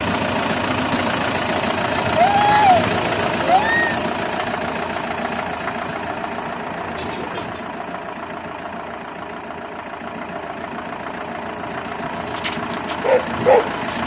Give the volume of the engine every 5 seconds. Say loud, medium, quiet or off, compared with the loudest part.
loud, medium, medium.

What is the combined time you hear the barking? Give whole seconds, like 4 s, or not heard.
4 s.